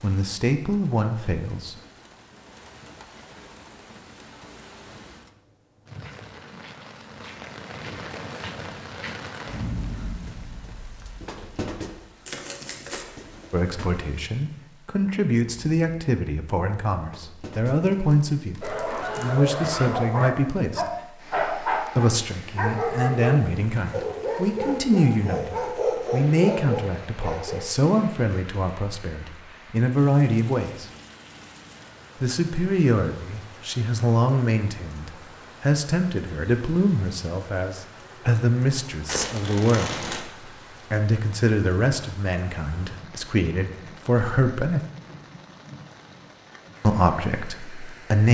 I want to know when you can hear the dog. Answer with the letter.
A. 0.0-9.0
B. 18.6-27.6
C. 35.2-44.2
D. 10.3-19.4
B.